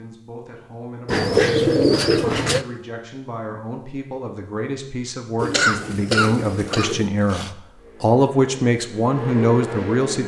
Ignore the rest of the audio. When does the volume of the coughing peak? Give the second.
6 s.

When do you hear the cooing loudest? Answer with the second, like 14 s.
2 s.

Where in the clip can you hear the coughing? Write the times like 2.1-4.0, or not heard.
5.5-7.5.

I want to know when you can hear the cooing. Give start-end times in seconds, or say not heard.
1.1-2.6, 5.3-7.1.